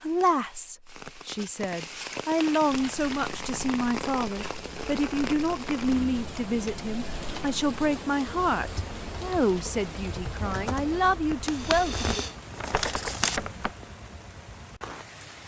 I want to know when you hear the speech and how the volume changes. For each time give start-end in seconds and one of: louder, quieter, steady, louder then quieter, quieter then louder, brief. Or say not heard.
0.0-12.2 steady.